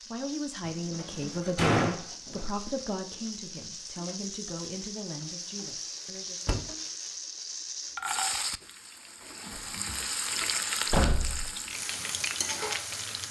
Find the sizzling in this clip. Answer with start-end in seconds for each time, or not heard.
0.0-13.2.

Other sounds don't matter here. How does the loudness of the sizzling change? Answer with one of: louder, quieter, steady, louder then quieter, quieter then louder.
louder.